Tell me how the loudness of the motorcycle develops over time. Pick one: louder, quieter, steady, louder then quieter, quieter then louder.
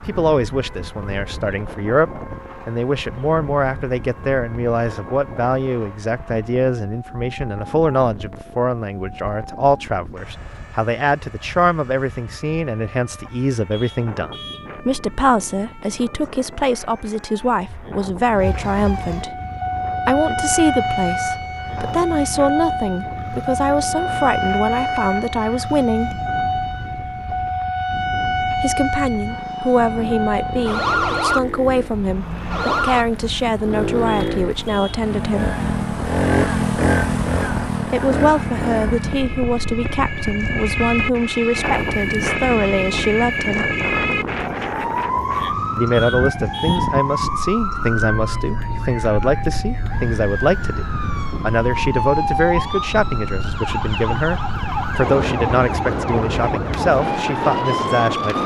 louder.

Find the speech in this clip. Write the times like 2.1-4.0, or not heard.
0.0-19.4, 20.1-26.2, 28.6-35.5, 37.8-43.7, 45.8-58.4.